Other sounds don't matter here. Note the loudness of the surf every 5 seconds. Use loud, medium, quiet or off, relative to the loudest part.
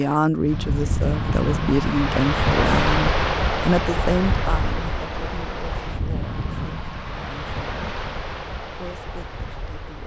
loud, medium.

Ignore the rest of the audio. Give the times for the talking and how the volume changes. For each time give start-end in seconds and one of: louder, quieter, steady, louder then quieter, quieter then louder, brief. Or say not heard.
0.0-10.0 quieter.